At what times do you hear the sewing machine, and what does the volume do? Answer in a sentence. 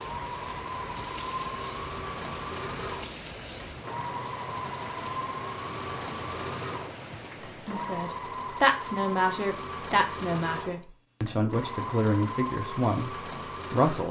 The sewing machine can be heard from 0.0 to 14.0 s, at a steady volume.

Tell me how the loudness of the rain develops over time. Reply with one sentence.
The loudness of the rain stays about the same.